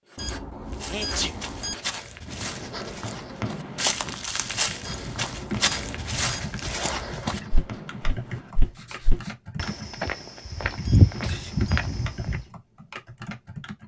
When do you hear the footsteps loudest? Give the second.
11 s.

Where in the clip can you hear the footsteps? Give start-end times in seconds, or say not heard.
0.7-12.4.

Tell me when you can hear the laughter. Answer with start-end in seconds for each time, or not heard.
not heard.